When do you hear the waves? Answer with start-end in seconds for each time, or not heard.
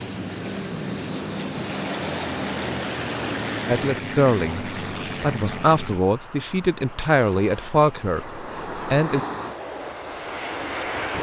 0.0-11.1.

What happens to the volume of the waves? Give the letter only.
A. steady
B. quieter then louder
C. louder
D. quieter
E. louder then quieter
B.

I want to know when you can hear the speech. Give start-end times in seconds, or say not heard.
3.6-9.2.